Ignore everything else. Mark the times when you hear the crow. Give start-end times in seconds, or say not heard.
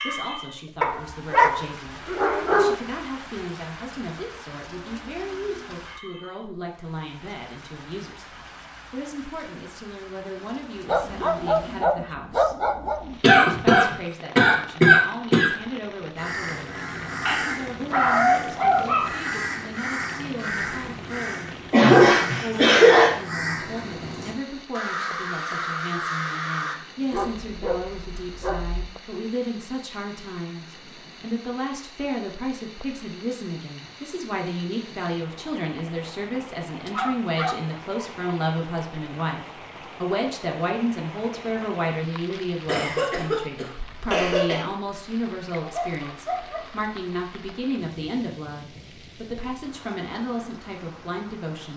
16.1-26.8.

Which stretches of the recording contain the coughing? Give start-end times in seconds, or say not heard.
13.2-15.5, 21.7-23.1, 42.6-44.6.